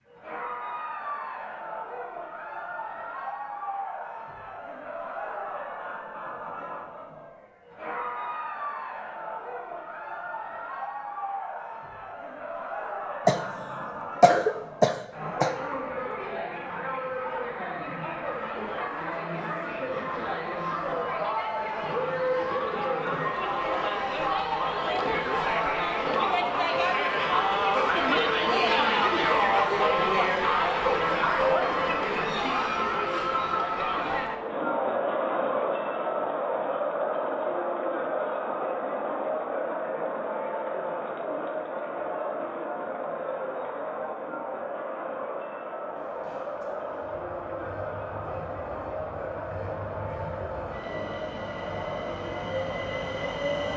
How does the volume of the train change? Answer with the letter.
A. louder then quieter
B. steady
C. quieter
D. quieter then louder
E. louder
E.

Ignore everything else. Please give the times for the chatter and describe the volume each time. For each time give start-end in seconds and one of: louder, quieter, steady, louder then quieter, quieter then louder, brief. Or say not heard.
0.1-53.7 louder then quieter.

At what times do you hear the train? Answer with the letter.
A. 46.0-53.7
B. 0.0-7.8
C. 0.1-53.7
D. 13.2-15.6
A.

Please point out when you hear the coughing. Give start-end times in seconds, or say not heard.
13.2-15.6.